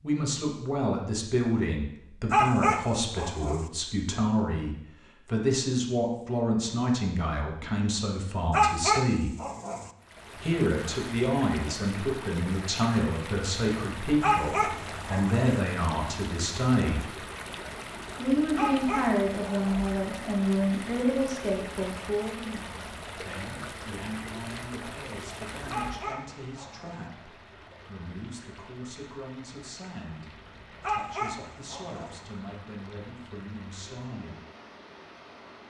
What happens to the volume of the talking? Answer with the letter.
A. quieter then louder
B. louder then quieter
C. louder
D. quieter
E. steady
D.